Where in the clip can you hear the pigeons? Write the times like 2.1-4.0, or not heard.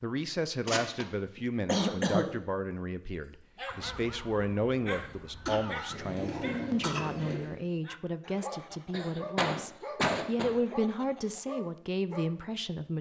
5.9-7.5.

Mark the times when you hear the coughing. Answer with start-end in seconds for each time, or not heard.
0.7-2.3, 5.5-7.0, 8.9-10.6.